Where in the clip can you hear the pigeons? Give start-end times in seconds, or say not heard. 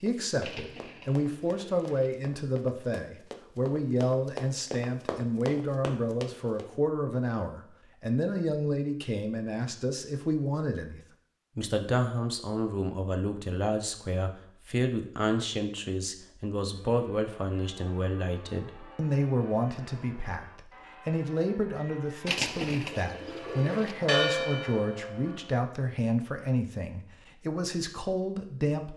0.4-2.1, 22.2-23.9.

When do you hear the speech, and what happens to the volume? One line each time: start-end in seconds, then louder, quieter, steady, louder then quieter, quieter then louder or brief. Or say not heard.
0.0-28.9 steady.